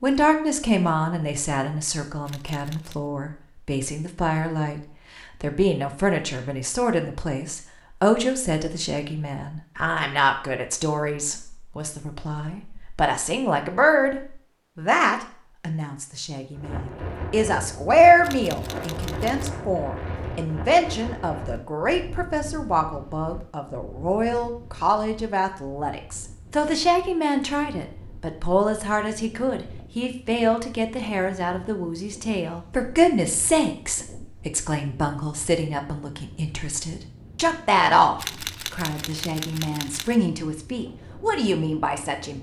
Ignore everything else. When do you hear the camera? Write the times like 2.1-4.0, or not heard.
2.2-3.0, 18.2-19.5, 38.1-40.1.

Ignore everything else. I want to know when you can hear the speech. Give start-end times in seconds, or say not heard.
0.0-42.3.